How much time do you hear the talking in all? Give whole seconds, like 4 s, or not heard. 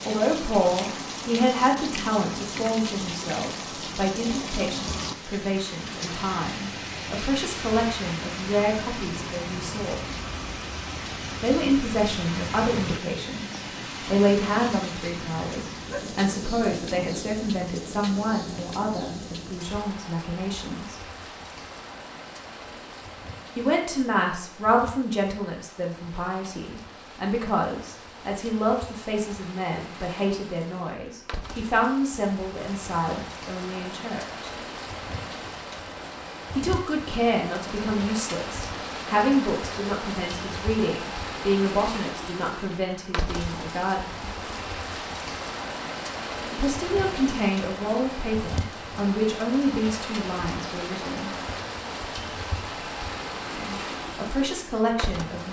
45 s.